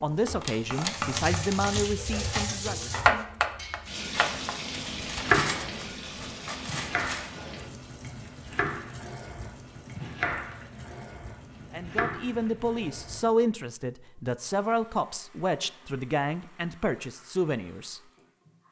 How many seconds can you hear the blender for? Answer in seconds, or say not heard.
not heard.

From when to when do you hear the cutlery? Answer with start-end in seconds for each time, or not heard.
0.2-7.3.